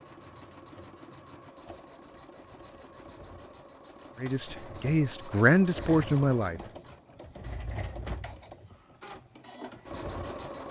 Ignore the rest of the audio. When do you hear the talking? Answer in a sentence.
The talking can be heard from 4.2 to 6.6 s.